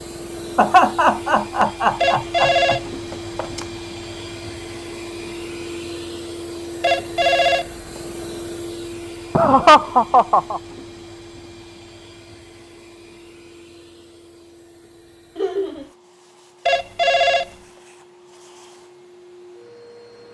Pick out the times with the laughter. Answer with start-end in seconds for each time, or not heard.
0.6-2.8, 9.3-10.6, 15.3-15.9.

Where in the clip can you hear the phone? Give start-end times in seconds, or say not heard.
2.0-3.6, 6.8-8.0, 16.6-17.5.